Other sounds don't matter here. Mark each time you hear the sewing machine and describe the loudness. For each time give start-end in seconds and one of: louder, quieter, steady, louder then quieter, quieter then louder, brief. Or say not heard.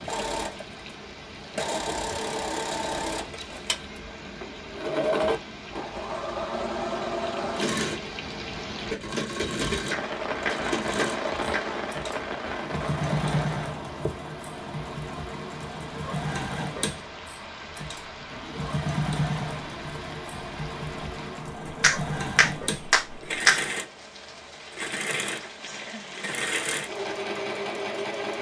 0.0-28.3 steady.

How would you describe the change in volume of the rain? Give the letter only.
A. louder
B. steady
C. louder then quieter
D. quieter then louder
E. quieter
C.